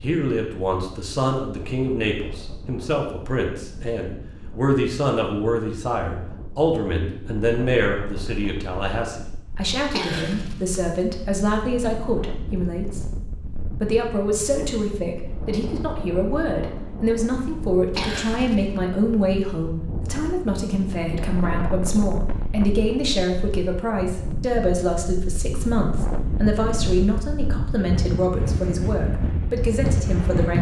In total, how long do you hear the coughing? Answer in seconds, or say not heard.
2 s.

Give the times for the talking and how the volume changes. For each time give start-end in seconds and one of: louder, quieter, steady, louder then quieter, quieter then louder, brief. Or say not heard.
0.0-30.5 steady.